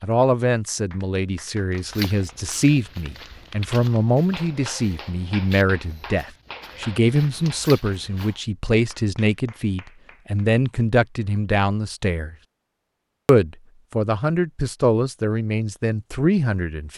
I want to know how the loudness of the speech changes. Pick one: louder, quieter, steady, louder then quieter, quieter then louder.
steady.